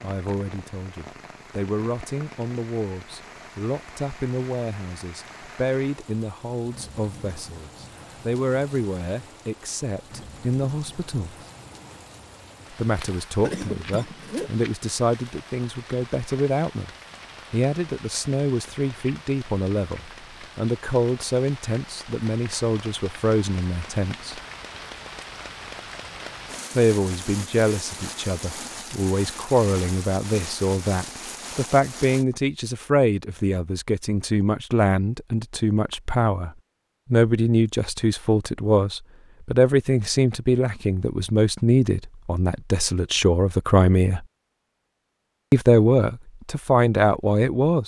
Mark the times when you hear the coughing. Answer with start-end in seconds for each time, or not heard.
13.4-14.5.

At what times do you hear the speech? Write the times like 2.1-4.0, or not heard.
0.0-11.3, 12.7-16.9, 17.5-24.4, 26.8-36.5, 37.1-44.2, 45.5-47.8.